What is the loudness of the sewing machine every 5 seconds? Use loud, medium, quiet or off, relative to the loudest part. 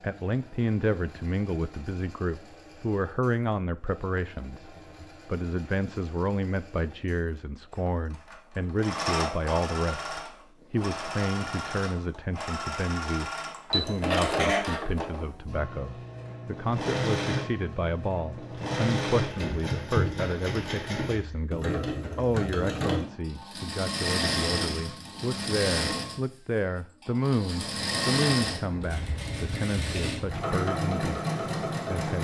quiet, medium, loud, loud, loud, loud, loud.